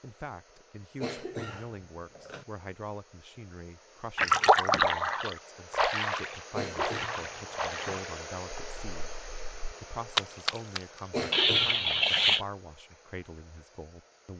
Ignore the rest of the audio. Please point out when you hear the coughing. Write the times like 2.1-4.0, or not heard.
1.0-2.5, 6.5-8.0, 11.1-12.4.